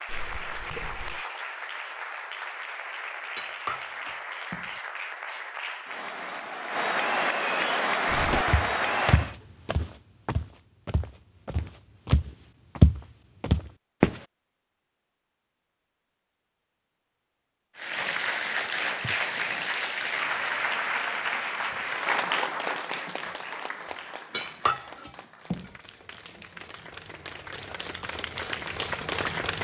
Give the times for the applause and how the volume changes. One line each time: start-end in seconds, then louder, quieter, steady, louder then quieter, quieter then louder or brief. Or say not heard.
0.0-9.3 louder
17.8-29.5 quieter then louder.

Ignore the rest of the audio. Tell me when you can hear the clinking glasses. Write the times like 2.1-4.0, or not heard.
3.4-4.7, 24.3-25.7.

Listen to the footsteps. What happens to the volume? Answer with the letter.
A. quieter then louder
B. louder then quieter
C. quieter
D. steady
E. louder
A.